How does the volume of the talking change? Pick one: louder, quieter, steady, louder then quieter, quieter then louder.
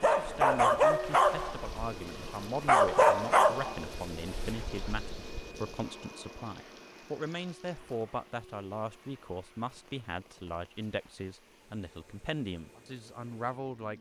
steady.